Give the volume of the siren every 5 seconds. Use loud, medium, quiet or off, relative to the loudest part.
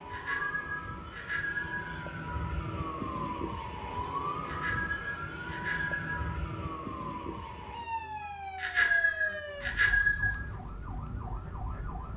loud, loud, medium.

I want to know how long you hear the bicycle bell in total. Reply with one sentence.
The bicycle bell can be heard for 5 seconds in total.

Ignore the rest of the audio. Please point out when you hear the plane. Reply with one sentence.
You can't hear the plane here.